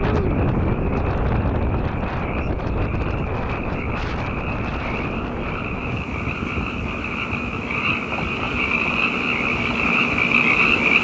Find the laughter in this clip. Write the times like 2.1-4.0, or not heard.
not heard.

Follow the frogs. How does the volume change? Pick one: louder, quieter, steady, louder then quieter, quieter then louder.
louder.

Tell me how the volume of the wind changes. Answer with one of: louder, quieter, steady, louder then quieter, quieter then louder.
quieter.